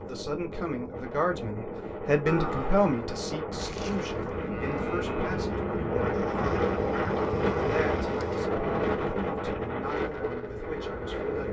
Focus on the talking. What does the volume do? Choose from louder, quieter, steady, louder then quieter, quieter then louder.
quieter.